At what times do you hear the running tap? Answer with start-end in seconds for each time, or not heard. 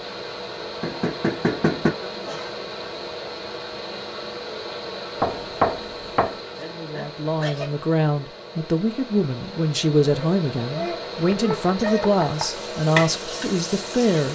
12.4-14.2.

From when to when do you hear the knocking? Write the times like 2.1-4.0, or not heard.
0.8-1.9, 5.2-6.3, 11.3-12.6.